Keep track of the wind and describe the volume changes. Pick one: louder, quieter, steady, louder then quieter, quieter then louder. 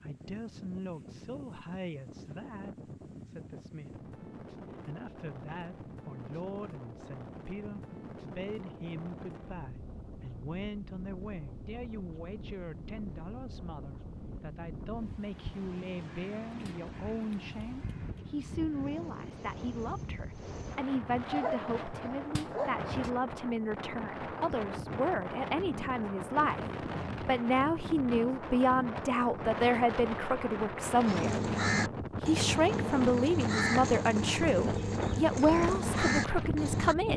louder.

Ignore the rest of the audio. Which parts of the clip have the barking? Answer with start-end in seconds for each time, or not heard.
21.3-23.1.